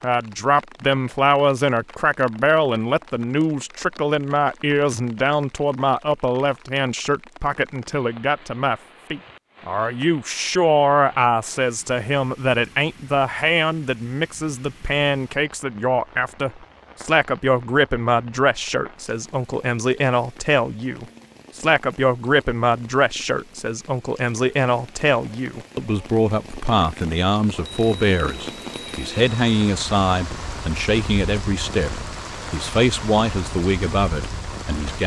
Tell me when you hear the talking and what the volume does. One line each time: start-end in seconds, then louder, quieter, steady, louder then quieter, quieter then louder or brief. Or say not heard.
0.0-35.0 steady.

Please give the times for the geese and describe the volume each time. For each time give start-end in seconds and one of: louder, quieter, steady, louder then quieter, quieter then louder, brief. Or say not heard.
not heard.